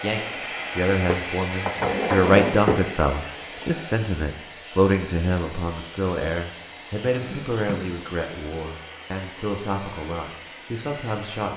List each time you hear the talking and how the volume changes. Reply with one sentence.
The talking can be heard from 0.0 to 11.5 s, getting quieter.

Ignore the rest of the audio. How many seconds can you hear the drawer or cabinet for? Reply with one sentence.
You can hear the drawer or cabinet for 3 seconds altogether.